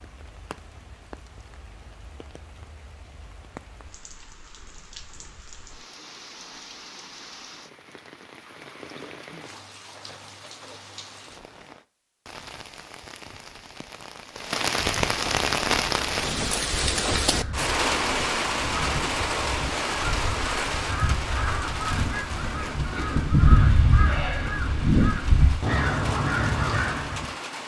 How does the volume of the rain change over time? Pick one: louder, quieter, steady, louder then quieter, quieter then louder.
louder then quieter.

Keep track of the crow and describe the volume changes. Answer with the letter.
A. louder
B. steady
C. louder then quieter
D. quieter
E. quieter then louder
A.